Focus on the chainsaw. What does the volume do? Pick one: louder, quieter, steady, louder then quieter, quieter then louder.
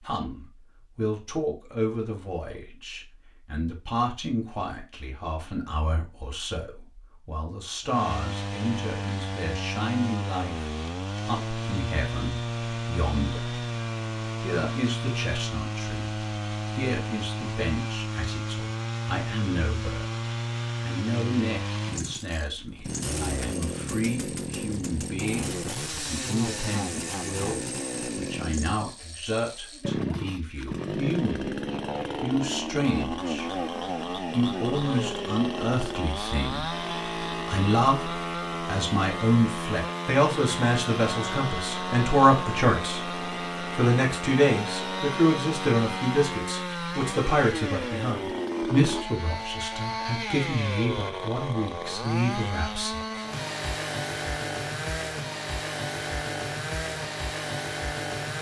steady.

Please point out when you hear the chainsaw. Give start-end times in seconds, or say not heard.
7.8-58.3.